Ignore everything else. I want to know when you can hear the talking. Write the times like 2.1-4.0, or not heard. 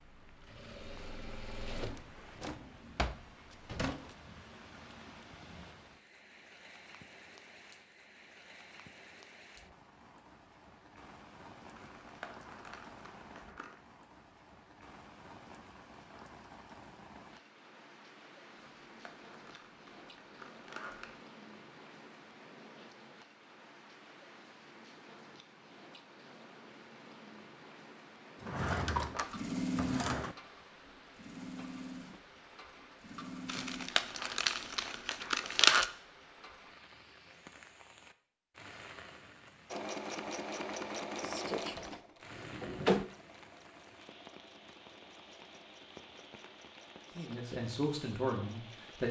47.1-49.0.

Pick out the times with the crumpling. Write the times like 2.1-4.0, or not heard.
11.8-13.8, 18.6-21.2, 33.5-35.9.